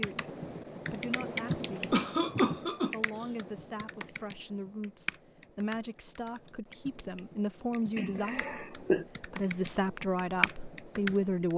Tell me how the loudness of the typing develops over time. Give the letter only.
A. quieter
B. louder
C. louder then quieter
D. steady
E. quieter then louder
E.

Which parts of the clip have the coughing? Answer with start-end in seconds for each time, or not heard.
1.4-3.0, 8.0-9.1.